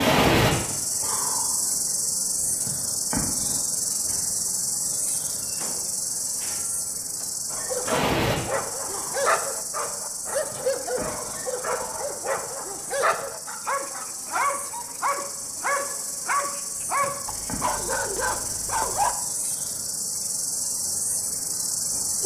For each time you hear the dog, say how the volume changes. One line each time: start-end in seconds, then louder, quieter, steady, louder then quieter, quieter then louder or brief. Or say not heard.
7.5-19.1 steady.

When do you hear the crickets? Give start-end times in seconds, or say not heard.
0.0-22.2.